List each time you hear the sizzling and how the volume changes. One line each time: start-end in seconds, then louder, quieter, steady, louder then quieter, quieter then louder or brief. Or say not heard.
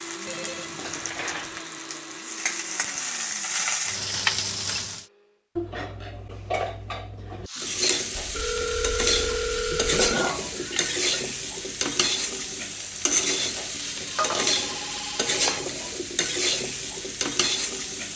0.0-5.0 louder
7.5-18.1 steady.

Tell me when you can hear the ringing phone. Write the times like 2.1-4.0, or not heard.
0.2-1.0, 8.2-10.2, 13.7-15.7.